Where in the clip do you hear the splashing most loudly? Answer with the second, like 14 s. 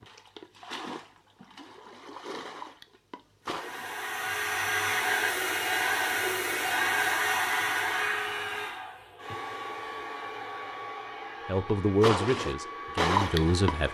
13 s.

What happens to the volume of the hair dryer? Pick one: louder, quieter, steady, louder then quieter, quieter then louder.
quieter.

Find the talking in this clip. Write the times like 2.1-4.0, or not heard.
11.4-13.9.